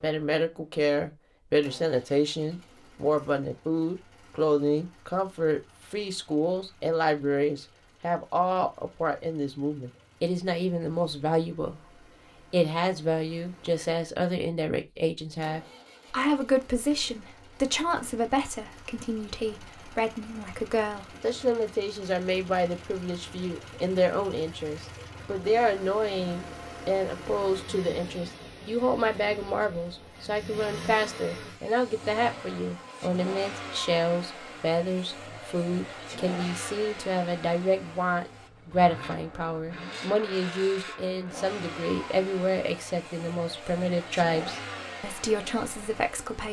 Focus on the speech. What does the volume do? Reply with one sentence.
The volume of the speech stays about the same.